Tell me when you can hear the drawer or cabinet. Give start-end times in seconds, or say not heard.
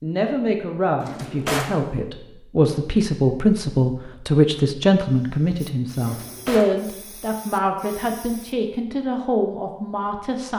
1.0-1.8, 6.0-6.8.